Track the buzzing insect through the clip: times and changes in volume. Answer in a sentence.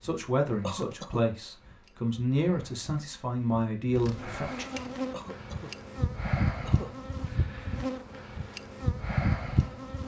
You can hear the buzzing insect from 0.0 to 10.0 s, getting louder.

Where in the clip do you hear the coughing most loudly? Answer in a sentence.
The loudest moment of the coughing is at 1 second.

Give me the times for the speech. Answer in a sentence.
The speech can be heard from 0.0 to 4.7 s.